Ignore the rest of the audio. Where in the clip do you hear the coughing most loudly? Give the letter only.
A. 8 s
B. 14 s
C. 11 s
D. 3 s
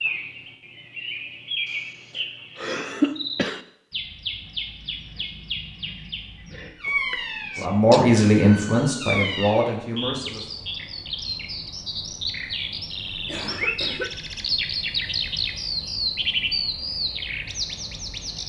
D.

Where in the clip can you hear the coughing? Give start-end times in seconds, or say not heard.
1.7-3.6, 6.8-8.1, 13.2-14.2.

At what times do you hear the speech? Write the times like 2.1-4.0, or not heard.
7.5-10.4.